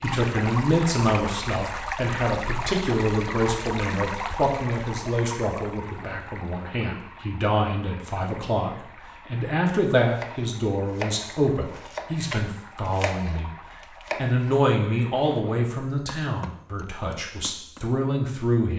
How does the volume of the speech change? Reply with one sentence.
The loudness of the speech stays about the same.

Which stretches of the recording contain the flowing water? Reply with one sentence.
You can hear the flowing water from 0.0 to 15.7 s.